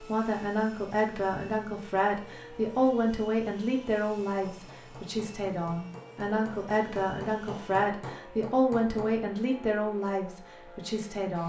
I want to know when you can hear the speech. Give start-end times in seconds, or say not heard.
0.0-11.4.